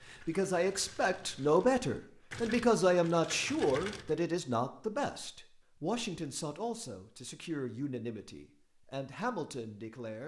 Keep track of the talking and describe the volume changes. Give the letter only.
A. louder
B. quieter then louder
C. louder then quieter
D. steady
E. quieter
E.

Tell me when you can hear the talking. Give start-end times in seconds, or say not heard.
0.0-10.2.